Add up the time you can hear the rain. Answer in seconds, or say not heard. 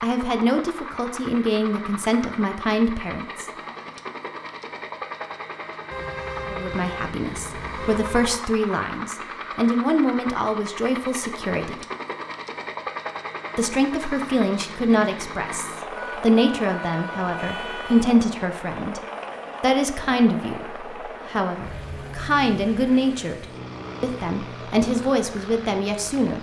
not heard.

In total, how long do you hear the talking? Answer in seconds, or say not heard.
21 s.